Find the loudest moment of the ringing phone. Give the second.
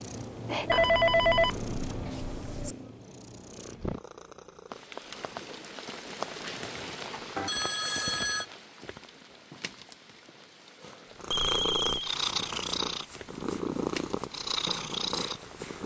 1 s.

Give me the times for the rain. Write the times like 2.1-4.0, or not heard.
4.7-15.8.